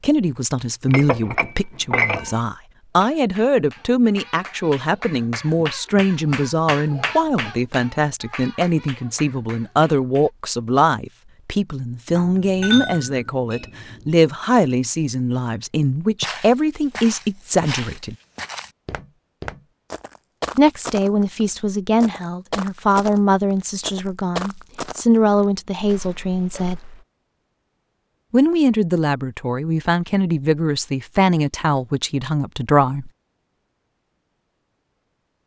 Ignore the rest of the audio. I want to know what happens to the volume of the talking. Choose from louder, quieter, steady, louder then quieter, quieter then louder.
steady.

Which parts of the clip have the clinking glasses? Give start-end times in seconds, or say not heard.
0.8-2.4, 12.2-14.0.